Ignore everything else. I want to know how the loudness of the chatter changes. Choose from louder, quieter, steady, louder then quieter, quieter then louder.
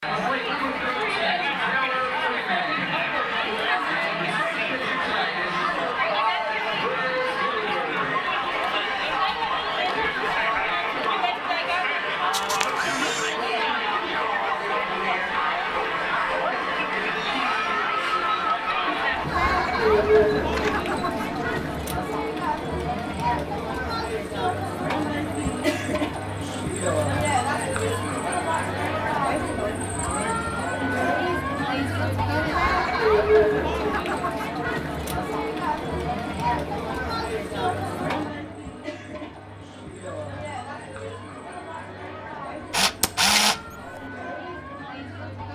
quieter.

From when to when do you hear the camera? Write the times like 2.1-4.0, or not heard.
12.3-13.3, 19.8-21.6, 42.7-44.0.